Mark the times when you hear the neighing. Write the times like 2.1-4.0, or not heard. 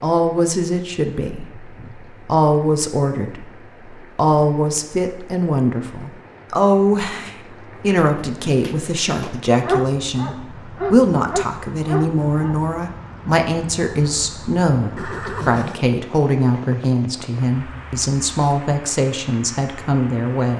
14.9-15.8.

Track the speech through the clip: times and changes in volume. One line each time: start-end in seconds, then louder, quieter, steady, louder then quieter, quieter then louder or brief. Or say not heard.
0.0-20.5 steady.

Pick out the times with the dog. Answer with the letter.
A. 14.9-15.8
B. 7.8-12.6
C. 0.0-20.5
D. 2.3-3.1
B.